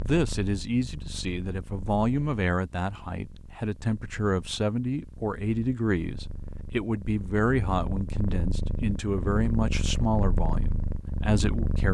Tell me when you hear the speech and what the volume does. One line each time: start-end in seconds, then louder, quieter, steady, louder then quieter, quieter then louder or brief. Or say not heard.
0.0-11.8 steady.